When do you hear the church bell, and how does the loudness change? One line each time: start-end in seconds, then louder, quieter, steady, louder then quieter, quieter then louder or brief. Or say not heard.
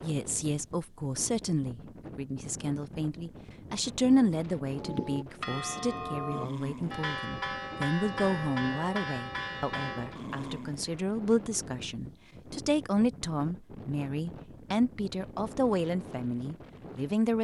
4.7-10.2 steady.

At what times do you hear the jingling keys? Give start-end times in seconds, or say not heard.
not heard.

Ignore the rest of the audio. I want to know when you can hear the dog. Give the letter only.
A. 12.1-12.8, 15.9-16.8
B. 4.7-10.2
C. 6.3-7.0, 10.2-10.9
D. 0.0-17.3
C.